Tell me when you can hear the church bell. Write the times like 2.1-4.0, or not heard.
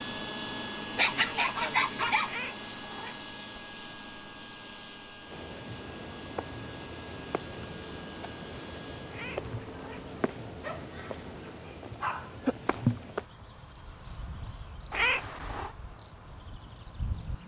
not heard.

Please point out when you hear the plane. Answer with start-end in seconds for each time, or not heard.
0.0-9.2.